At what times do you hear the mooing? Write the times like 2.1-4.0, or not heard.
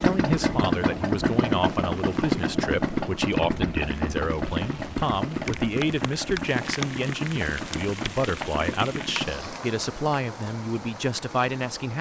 not heard.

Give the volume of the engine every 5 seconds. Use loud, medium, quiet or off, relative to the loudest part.
loud, medium, off.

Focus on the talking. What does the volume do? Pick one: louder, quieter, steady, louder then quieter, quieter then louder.
steady.